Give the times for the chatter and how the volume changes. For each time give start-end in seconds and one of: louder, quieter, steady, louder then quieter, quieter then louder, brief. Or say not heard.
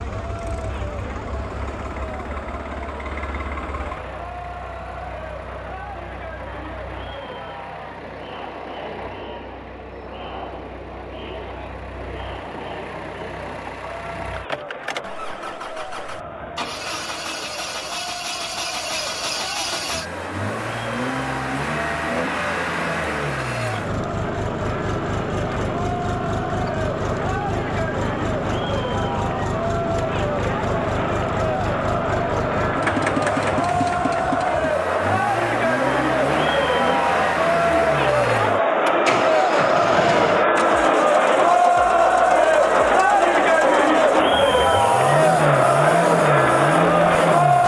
0.0-47.6 louder.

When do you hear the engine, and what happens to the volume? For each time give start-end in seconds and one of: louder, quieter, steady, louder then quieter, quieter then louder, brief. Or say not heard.
0.0-47.6 louder.